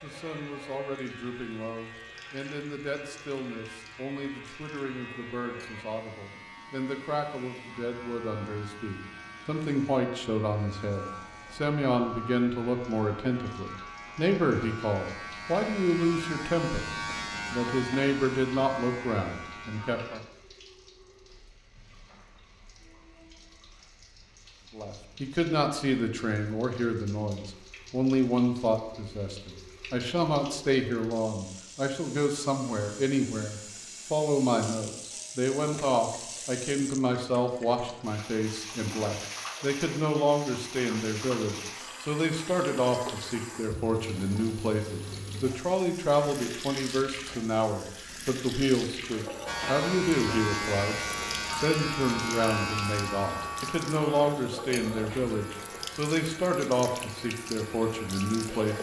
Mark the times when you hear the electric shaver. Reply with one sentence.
You can hear the electric shaver from 0.0 to 20.2 s and from 49.5 to 58.6 s.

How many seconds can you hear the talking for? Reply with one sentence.
You can hear the talking for 53 seconds altogether.